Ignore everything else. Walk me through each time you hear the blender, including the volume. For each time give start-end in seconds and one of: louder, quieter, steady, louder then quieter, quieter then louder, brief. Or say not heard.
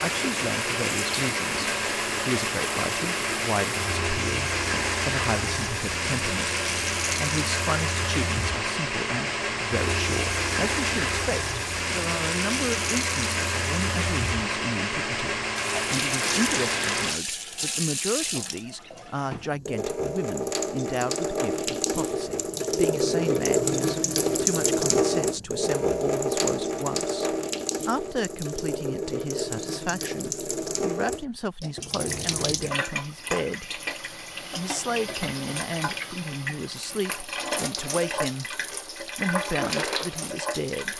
0.0-17.2 steady.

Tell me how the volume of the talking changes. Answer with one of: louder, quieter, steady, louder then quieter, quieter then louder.
steady.